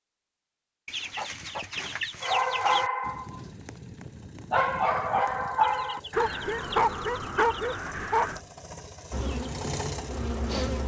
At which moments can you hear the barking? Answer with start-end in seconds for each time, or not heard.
2.2-8.4.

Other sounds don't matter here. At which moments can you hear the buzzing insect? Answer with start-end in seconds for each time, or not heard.
9.1-10.8.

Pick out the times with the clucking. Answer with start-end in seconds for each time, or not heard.
0.8-2.9, 5.6-7.8.